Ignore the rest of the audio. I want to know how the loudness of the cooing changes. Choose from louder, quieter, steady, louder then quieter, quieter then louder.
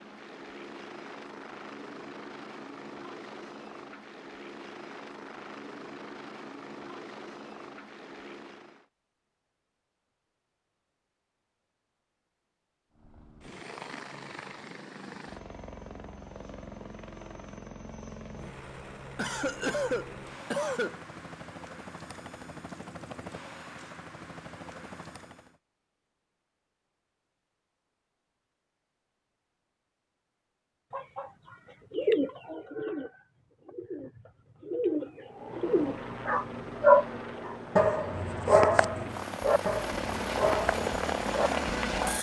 quieter then louder.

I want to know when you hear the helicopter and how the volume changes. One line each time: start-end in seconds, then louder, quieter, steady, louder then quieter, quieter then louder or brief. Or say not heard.
0.0-8.8 steady
12.9-25.6 steady
35.2-42.1 louder.